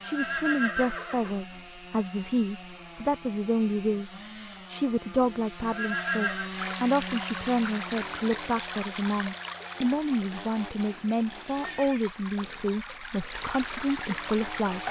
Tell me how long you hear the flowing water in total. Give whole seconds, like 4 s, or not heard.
8 s.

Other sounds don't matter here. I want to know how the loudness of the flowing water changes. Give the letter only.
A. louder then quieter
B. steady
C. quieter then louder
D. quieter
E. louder
C.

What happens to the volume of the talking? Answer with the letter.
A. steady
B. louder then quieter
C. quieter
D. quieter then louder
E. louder
A.